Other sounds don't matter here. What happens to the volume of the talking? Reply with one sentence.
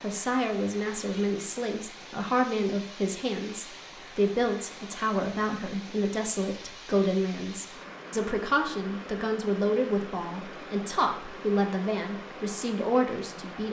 The loudness of the talking stays about the same.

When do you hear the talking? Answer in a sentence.
You can hear the talking from 0.0 to 13.6 s.